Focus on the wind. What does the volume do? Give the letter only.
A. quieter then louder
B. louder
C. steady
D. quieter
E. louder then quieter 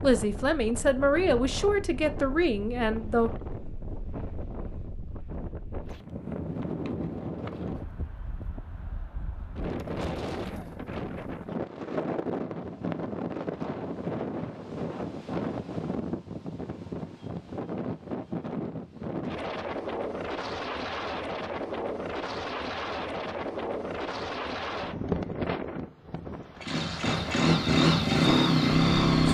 B.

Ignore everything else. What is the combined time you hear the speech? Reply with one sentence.
You can hear the speech for 3 seconds altogether.